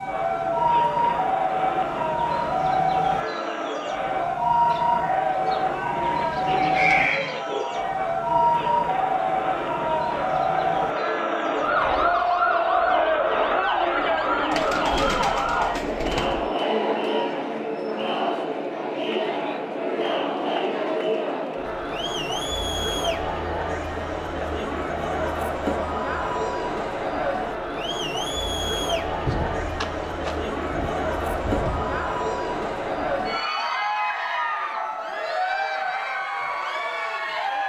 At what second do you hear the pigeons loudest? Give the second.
7 s.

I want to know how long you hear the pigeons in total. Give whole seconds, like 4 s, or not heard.
8 s.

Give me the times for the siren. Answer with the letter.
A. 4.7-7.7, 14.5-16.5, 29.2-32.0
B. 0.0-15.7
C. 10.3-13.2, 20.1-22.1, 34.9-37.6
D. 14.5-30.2
B.